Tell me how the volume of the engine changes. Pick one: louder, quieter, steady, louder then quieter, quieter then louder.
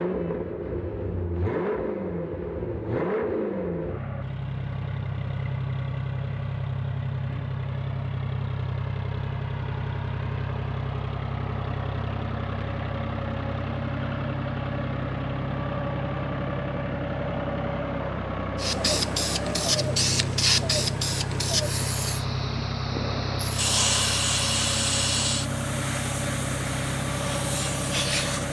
steady.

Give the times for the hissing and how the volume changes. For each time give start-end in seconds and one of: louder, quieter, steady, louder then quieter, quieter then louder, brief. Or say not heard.
18.6-28.4 quieter.